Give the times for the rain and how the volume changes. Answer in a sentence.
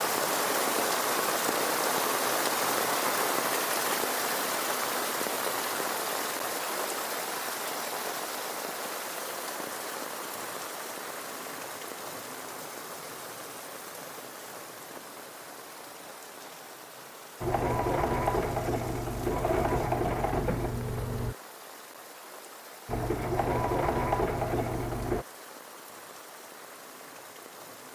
The rain can be heard from 0.0 to 27.9 s, getting quieter.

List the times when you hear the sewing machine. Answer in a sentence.
You can hear the sewing machine from 17.4 to 21.4 s and from 22.9 to 25.2 s.